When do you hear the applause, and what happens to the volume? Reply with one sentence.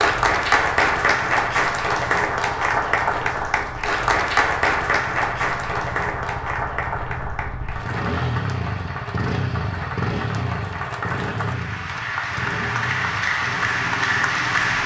The applause can be heard from 0.0 to 14.8 s, getting quieter then louder.